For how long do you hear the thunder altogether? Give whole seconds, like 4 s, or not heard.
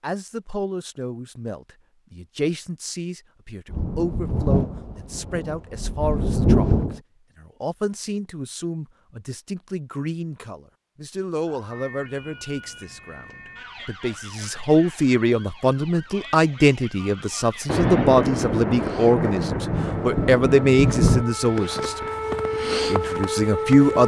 7 s.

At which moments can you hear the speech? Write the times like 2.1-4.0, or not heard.
0.0-24.0.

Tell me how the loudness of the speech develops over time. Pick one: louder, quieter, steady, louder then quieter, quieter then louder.
louder.